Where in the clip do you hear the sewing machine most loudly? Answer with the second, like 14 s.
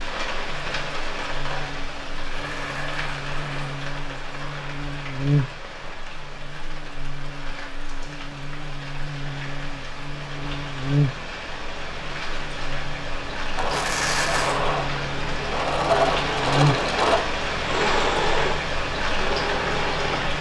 16 s.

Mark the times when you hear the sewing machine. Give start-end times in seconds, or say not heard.
13.6-20.3.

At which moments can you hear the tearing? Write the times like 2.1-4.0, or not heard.
2.1-3.9, 13.6-14.6.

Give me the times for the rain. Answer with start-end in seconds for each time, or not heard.
0.0-20.3.